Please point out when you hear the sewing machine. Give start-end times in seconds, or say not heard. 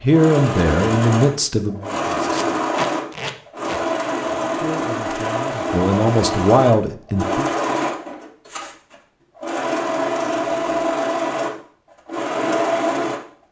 0.1-13.2.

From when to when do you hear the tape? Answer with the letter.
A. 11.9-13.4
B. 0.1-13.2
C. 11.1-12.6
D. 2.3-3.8
D.